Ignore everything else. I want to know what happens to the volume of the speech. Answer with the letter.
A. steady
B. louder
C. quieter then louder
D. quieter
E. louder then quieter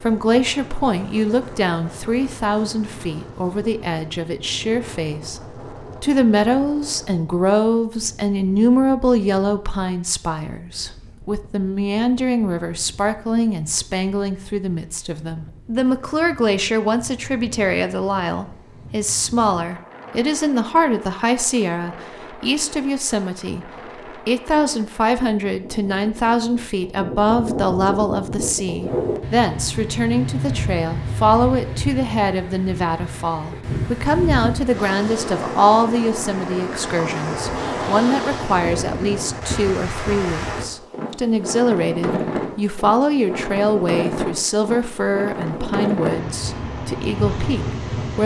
A.